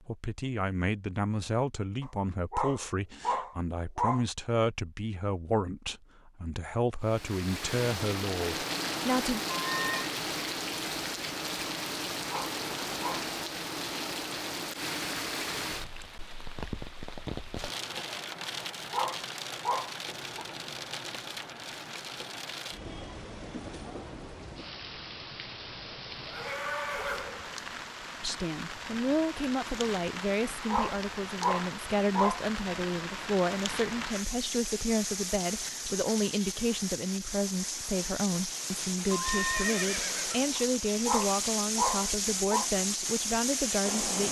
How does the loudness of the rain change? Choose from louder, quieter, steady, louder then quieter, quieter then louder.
quieter then louder.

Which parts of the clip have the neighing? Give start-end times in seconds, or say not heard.
9.6-10.1, 26.1-27.6, 39.1-40.5.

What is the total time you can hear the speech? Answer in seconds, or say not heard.
25 s.